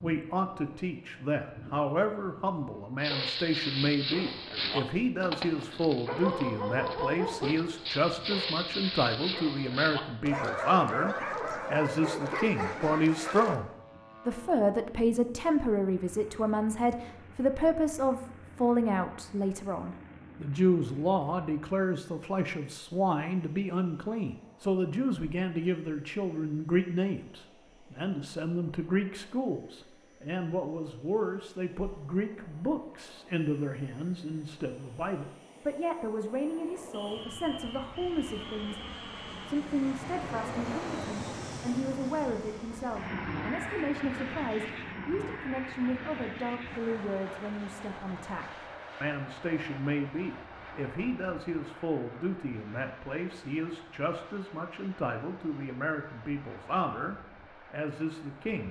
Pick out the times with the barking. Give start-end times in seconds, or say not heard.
3.0-13.6.